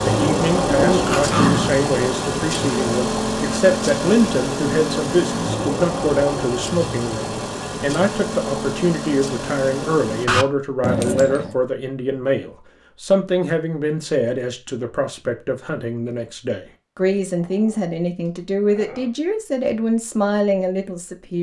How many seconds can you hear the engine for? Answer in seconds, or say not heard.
10 s.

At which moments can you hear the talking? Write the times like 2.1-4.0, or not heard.
0.0-21.3.